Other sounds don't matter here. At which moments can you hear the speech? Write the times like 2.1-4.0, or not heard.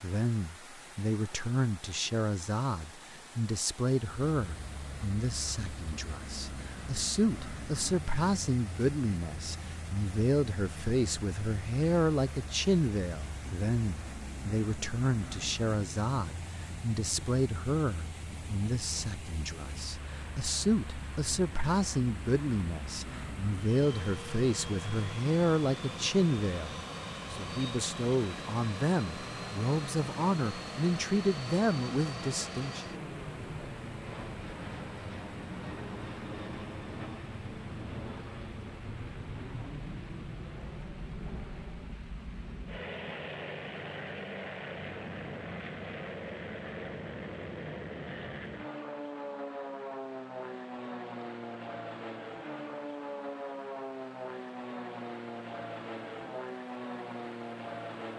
0.0-32.9.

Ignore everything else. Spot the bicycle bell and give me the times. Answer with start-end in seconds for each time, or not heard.
not heard.